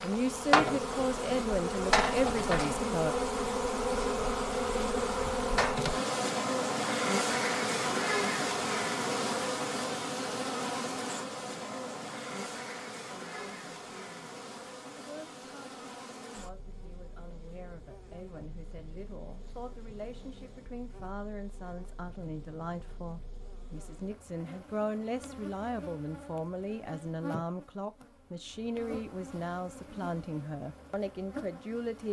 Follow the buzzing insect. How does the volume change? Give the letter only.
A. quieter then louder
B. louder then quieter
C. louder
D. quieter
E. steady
A.